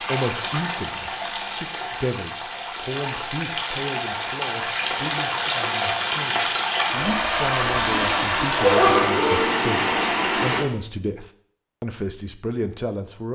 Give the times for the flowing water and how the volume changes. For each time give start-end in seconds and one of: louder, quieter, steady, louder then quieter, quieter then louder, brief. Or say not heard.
0.0-10.7 louder.